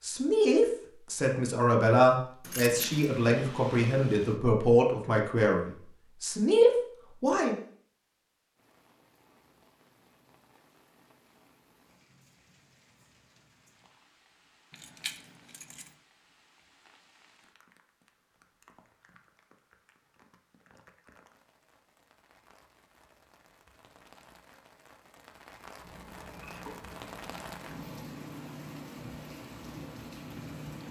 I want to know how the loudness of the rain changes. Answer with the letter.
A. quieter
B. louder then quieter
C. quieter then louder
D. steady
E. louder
E.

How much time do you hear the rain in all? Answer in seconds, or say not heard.
22 s.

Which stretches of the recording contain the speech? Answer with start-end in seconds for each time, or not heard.
0.0-7.5.